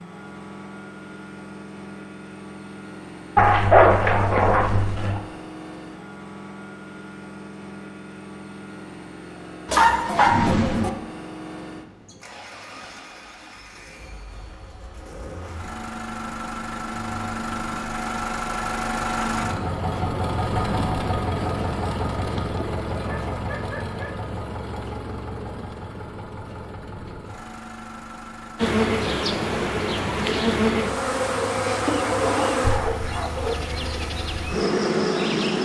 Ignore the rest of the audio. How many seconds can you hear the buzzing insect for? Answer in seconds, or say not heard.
7 s.